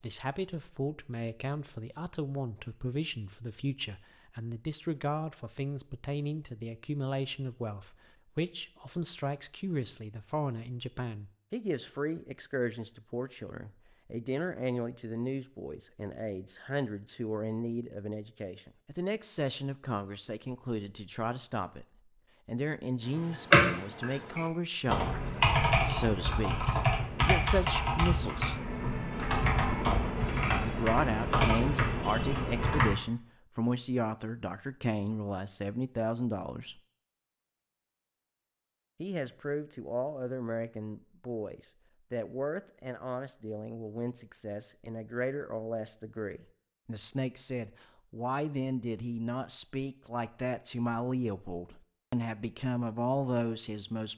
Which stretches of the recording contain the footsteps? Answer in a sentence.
The footsteps can't be heard in this clip.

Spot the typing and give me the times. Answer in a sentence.
The typing can be heard from 23.1 to 33.0 s.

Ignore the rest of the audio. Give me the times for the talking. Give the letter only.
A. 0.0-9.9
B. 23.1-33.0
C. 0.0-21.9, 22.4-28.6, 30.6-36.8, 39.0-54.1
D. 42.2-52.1
C.